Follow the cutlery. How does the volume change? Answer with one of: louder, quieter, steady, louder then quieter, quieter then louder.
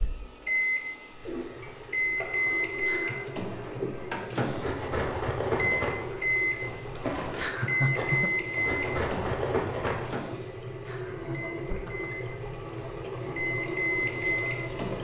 quieter then louder.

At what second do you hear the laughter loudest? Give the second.
8 s.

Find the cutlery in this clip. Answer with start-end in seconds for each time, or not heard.
4.5-10.1.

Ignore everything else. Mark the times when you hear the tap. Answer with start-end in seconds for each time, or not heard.
0.0-14.9.